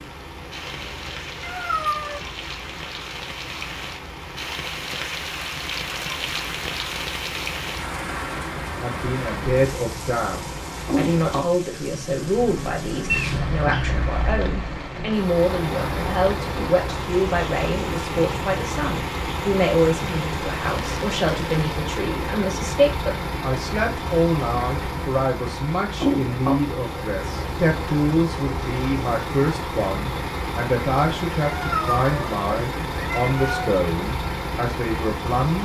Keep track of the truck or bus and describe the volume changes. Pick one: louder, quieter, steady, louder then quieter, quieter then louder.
louder.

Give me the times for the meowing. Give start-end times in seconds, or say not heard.
1.4-2.2, 13.1-13.8, 31.4-33.6.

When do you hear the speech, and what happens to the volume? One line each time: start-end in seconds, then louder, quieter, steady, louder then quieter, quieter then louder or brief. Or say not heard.
8.8-35.6 steady.